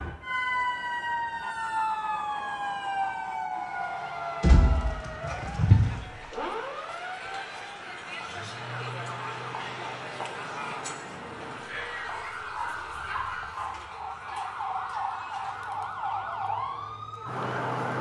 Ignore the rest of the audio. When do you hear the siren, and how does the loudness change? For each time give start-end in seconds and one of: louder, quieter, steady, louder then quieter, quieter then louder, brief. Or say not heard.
0.0-17.9 quieter then louder.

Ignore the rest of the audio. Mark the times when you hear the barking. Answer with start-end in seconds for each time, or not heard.
4.4-6.0, 12.1-13.8.